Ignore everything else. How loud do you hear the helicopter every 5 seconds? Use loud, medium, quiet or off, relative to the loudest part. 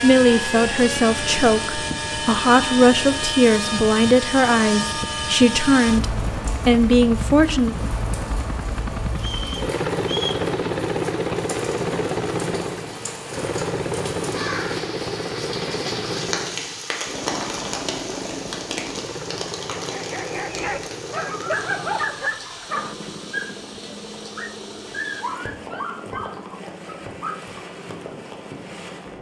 loud, loud, loud, medium, medium, quiet.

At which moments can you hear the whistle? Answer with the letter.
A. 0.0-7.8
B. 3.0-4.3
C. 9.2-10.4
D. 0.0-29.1
C.